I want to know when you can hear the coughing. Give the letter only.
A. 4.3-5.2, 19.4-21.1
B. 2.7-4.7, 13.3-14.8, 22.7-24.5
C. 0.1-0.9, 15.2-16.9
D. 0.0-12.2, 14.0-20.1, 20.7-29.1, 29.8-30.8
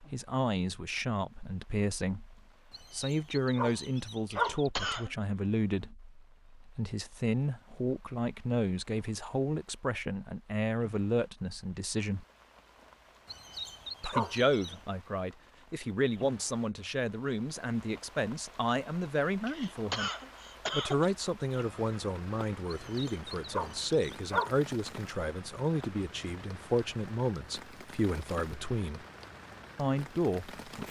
A.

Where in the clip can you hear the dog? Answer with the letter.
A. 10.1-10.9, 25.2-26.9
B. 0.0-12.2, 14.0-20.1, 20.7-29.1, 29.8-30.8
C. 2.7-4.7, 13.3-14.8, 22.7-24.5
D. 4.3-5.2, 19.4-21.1
C.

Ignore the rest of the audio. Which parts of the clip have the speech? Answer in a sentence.
The speech can be heard from 0.0 to 12.2 s, from 14.0 to 20.1 s, from 20.7 to 29.1 s and from 29.8 to 30.8 s.